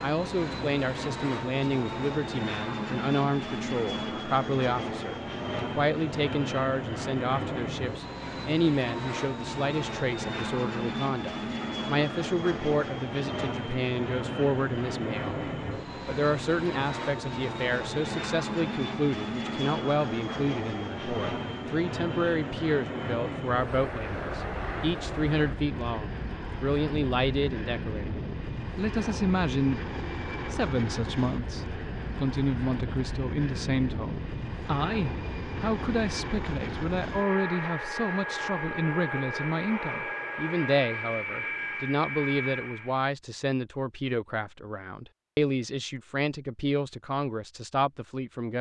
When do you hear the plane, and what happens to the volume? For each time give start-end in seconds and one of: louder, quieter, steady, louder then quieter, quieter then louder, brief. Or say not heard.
0.0-43.0 steady.